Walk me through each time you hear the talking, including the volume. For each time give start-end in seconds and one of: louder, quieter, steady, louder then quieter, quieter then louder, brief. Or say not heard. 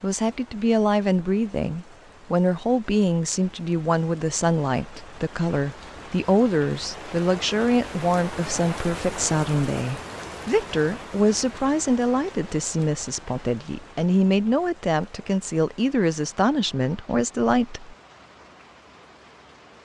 0.0-17.9 steady.